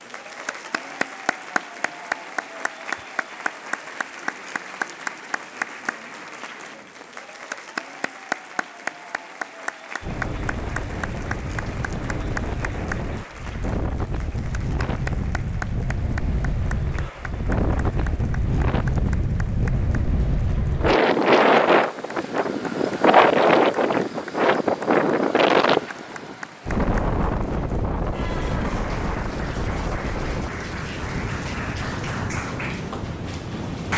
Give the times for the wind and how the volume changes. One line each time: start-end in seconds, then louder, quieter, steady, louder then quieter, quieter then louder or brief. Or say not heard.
10.0-33.9 louder then quieter.